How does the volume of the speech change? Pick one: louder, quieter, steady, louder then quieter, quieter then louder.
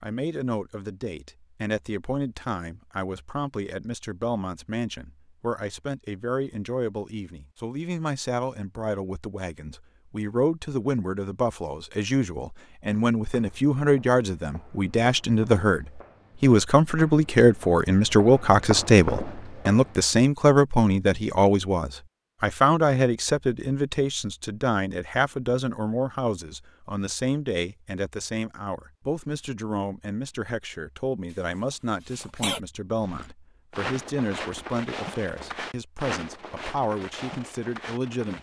louder then quieter.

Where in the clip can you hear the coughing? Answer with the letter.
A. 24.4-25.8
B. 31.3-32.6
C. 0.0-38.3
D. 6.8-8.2
B.